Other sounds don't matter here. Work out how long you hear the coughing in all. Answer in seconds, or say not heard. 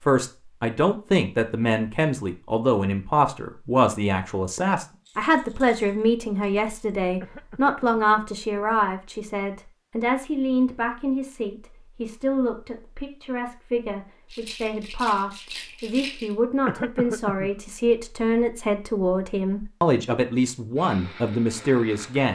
2 s.